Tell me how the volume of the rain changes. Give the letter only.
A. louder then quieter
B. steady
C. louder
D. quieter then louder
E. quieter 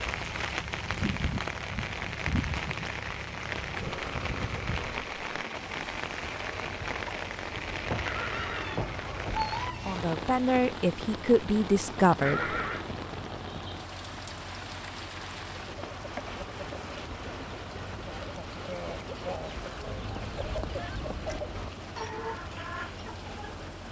E.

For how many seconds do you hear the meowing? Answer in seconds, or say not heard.
4 s.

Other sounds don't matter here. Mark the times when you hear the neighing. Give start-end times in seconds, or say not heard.
8.1-9.3, 12.2-12.9.